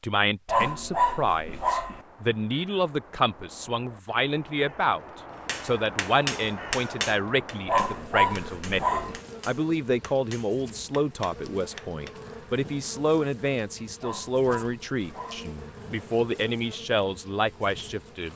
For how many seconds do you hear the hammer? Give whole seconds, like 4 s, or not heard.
7 s.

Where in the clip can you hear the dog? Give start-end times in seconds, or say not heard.
0.5-2.0, 7.7-9.2, 14.0-15.6.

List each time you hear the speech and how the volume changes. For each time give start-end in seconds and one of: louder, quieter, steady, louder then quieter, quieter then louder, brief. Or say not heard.
0.0-18.3 steady.